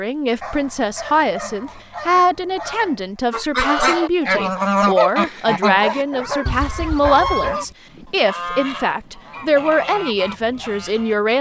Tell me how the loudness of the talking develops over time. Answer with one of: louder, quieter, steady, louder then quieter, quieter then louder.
steady.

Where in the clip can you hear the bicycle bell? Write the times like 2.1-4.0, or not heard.
not heard.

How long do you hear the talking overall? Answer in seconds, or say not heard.
11 s.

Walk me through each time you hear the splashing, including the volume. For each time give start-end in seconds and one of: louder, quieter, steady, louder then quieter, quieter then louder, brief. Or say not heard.
not heard.